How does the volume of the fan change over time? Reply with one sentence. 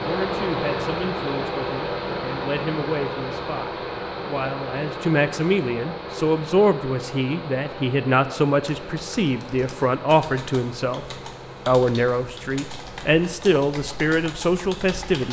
The loudness of the fan goes down.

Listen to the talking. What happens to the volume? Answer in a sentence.
The loudness of the talking goes up.